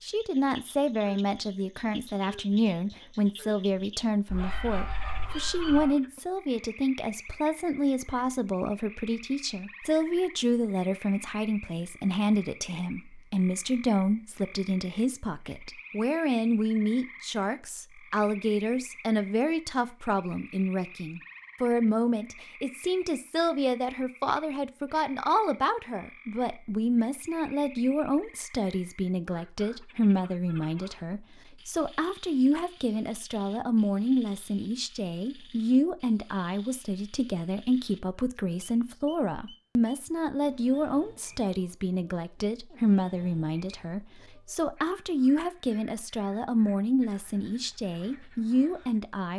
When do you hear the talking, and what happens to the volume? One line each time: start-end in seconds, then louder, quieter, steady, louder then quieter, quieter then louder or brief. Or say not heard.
0.0-49.3 steady.